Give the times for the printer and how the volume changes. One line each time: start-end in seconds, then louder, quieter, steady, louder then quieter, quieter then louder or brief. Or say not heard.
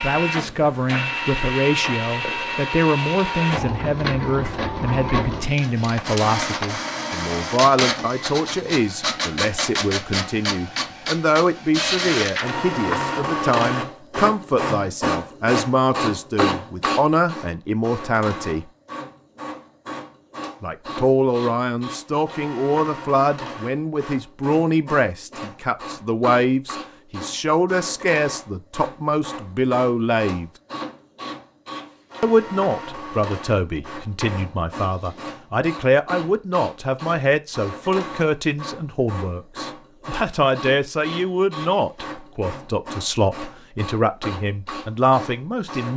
0.0-45.9 quieter.